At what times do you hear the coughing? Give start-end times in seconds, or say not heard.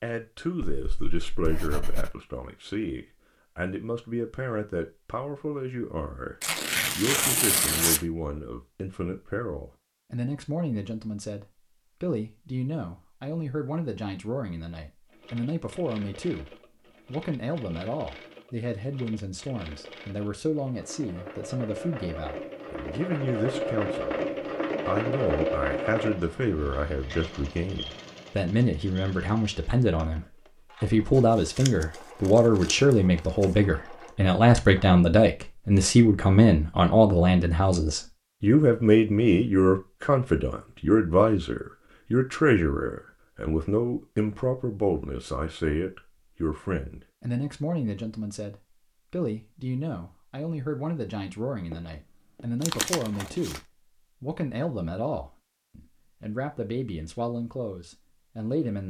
not heard.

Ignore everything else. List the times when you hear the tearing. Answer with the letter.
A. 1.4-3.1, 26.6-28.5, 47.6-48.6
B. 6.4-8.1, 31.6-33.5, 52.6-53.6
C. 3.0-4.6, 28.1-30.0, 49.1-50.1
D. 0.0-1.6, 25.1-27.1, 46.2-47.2
B.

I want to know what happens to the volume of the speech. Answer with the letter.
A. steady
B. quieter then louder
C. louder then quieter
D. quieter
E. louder
C.